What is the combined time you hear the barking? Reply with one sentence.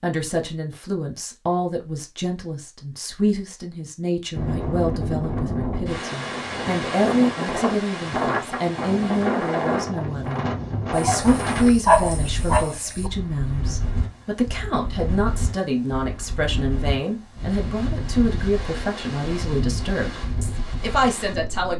The barking can be heard for 2 seconds in total.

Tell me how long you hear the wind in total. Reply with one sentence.
You can hear the wind for 17 seconds altogether.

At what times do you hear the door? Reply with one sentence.
You can't hear the door here.